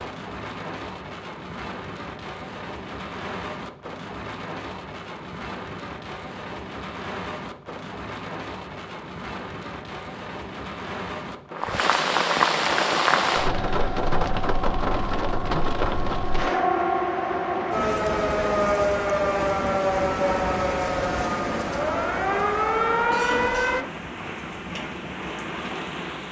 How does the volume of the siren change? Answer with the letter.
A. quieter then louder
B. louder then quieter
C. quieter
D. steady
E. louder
E.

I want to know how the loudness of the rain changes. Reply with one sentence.
The loudness of the rain goes up, then down.